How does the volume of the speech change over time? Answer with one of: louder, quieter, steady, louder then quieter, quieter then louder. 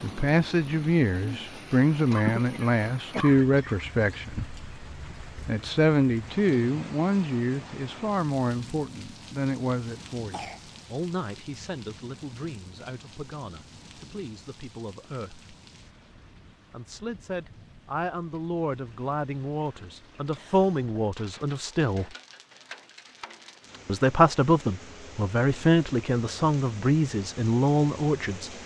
quieter then louder.